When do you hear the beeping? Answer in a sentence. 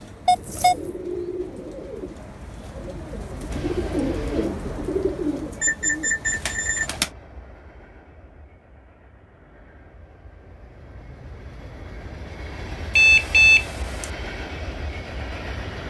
The beeping can be heard from 0.2 to 0.9 s, from 5.6 to 6.9 s and from 12.9 to 14.1 s.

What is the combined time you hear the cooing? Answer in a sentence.
The cooing can be heard for 7 seconds in total.